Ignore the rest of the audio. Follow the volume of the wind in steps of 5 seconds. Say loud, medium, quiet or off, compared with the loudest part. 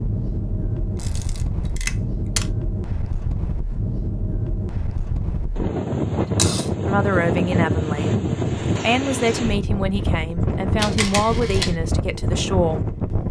medium, loud, loud.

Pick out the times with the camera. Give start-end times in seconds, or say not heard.
0.9-2.5, 6.3-6.8, 10.8-11.8.